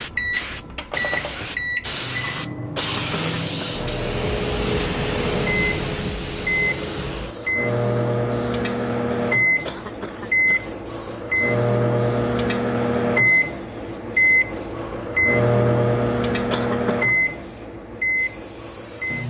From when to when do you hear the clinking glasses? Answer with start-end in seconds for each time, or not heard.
not heard.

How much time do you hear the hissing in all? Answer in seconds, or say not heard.
19 s.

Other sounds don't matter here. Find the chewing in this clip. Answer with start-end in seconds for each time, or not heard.
not heard.